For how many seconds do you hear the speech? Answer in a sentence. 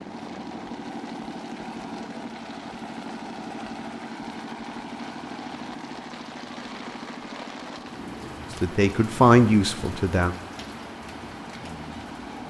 You can hear the speech for 2 seconds altogether.